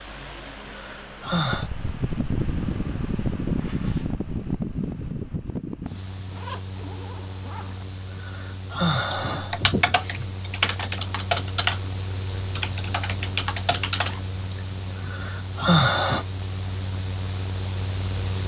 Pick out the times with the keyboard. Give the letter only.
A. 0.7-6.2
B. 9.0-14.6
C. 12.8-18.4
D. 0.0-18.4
B.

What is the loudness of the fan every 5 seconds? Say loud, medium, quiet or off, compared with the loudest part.
loud, medium, medium, medium.